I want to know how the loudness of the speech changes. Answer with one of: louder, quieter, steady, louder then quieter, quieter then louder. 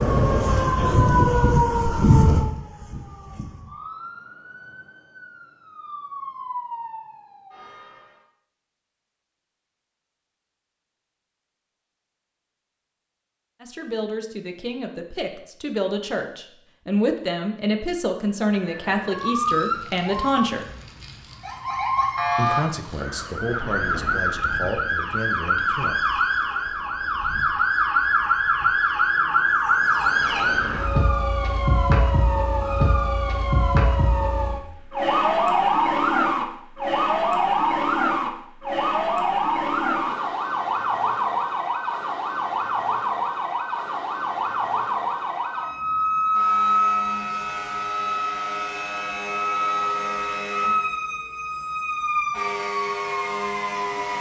louder then quieter.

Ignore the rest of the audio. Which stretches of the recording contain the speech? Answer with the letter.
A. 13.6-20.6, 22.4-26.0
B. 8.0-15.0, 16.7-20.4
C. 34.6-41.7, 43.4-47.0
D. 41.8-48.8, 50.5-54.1
A.